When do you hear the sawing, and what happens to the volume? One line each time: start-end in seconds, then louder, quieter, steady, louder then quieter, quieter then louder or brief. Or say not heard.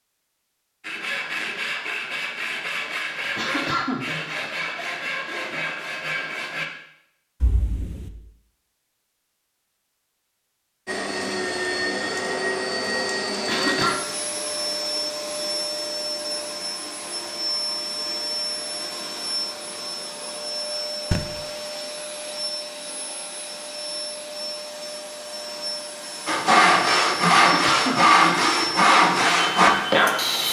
0.8-6.7 steady
26.2-30.4 steady.